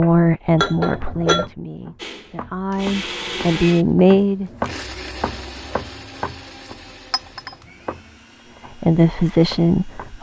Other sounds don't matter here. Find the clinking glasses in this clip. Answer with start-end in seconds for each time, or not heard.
0.6-1.5, 7.1-7.5.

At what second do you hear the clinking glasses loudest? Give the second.
1 s.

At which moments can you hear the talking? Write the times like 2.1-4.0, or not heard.
0.0-4.5, 8.8-10.1.